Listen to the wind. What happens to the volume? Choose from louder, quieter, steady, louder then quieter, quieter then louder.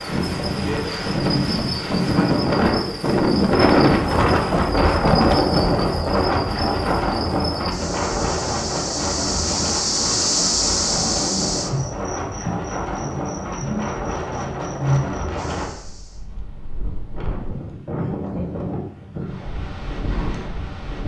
quieter.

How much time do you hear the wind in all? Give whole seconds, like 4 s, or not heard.
21 s.